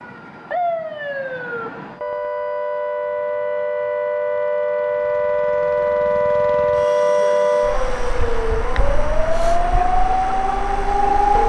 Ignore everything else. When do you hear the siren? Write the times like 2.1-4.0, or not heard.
0.0-11.4.